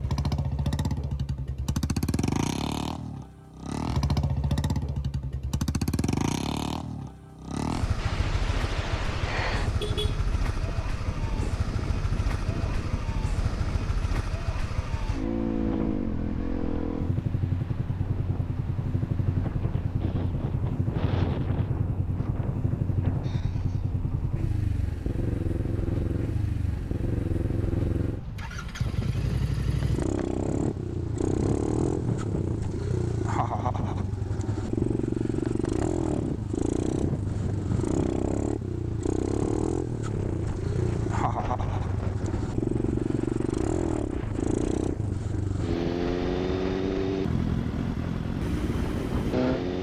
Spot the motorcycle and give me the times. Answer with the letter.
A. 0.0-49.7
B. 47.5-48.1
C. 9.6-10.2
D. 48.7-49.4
A.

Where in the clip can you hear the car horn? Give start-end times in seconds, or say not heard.
9.6-10.2.